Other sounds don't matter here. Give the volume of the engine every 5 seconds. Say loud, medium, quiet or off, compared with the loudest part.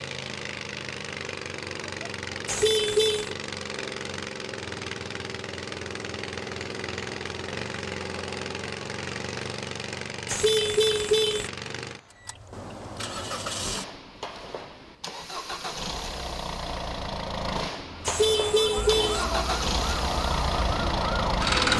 medium, medium, medium, medium, loud.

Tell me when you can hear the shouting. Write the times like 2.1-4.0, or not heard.
not heard.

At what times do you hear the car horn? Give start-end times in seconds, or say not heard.
2.5-3.4, 10.2-11.5, 18.1-19.2.